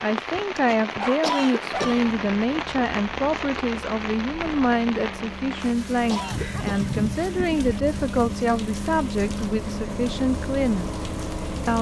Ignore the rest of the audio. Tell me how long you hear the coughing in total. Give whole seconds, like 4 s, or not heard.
2 s.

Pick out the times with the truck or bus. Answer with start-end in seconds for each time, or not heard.
1.8-11.7.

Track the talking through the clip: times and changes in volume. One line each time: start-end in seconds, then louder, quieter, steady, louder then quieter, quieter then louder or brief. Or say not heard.
0.0-10.9 steady.